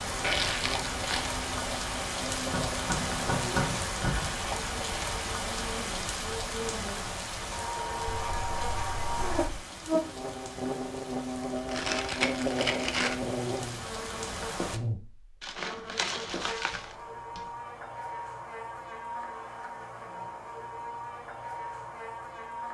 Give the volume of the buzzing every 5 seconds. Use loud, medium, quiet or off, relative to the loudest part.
medium, loud, loud, medium, medium.